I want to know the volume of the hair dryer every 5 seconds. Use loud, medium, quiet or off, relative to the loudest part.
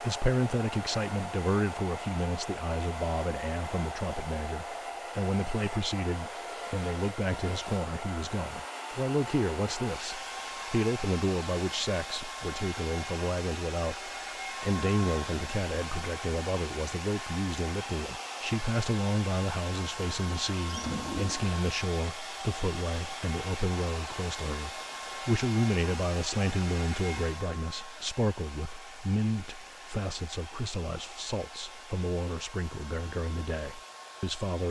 loud, loud, loud, loud, loud, loud, medium.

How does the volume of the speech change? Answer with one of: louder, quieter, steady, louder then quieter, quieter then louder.
steady.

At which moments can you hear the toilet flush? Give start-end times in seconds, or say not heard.
20.2-21.6.